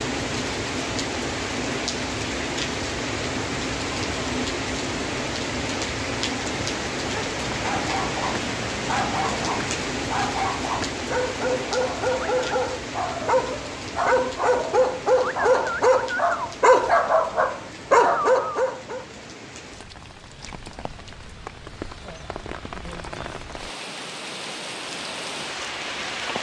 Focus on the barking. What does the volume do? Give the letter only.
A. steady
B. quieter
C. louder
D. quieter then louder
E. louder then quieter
C.